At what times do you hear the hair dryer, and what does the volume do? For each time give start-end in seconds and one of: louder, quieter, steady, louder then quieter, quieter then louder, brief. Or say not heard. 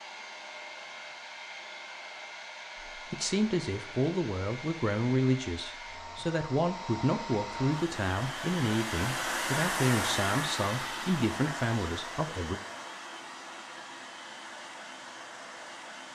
0.0-16.0 louder then quieter.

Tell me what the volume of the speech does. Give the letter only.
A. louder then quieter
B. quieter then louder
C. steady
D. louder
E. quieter
C.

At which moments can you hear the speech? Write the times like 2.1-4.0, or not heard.
3.0-12.6.